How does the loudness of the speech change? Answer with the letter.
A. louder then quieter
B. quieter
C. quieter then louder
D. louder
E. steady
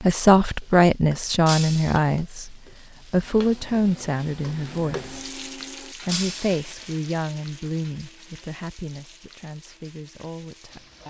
B.